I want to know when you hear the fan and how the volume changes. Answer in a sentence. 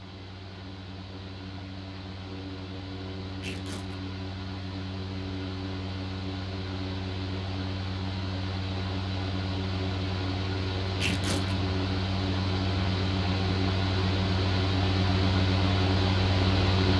You can hear the fan from 0.0 to 16.9 s, getting louder.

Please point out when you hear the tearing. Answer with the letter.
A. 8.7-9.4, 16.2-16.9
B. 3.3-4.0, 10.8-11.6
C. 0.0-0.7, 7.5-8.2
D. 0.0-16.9
B.